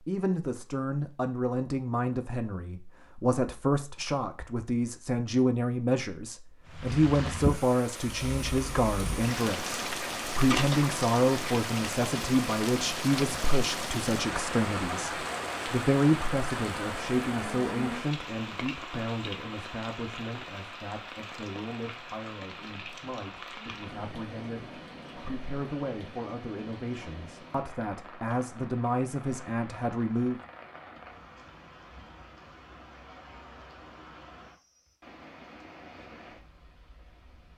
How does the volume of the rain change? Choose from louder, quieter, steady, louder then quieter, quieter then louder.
quieter.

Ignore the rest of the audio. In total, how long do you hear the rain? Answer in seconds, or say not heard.
31 s.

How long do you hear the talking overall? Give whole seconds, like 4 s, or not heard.
30 s.